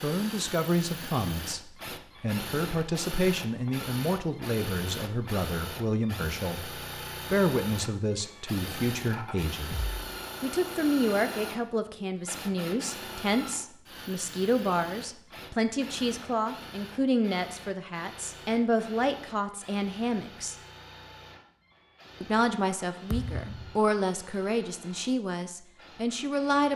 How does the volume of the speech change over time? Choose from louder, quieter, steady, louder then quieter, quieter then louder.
steady.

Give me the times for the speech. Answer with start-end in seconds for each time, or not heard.
0.0-9.8, 10.4-20.6, 22.2-26.7.